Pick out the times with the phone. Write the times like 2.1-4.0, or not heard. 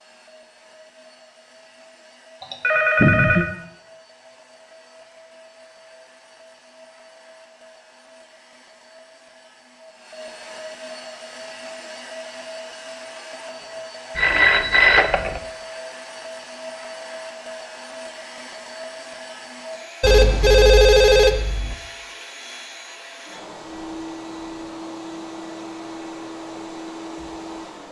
2.4-3.5, 14.2-15.4, 20.0-21.8.